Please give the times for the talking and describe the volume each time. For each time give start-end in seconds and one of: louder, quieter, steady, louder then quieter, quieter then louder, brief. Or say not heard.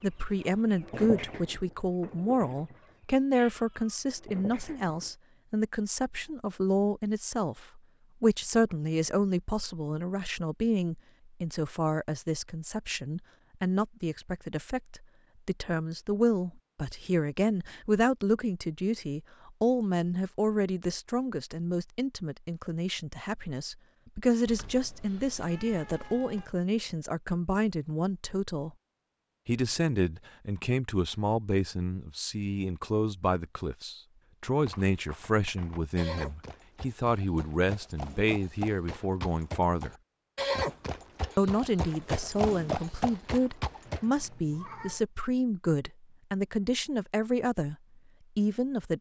0.0-28.7 steady
29.4-40.0 steady
41.4-47.8 steady
48.4-48.9 brief.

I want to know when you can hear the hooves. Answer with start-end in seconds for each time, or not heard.
34.5-44.0.